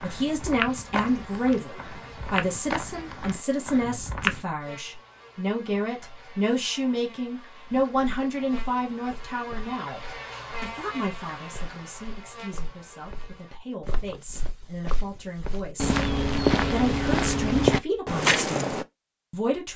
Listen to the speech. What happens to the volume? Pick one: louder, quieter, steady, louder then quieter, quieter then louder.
quieter then louder.